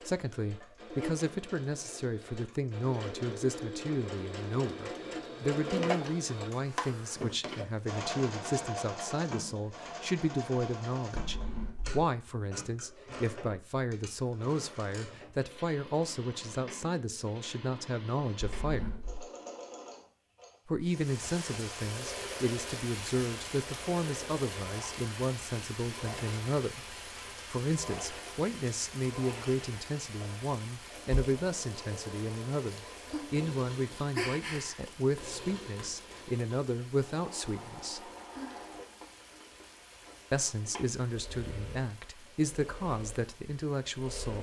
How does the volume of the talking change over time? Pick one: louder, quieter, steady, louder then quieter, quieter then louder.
steady.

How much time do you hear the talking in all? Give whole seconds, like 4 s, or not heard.
40 s.